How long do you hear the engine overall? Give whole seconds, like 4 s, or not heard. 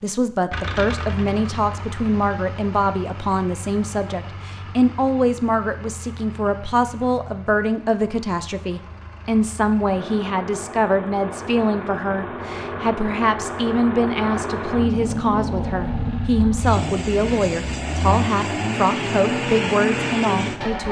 21 s.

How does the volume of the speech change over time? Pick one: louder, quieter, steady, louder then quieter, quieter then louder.
steady.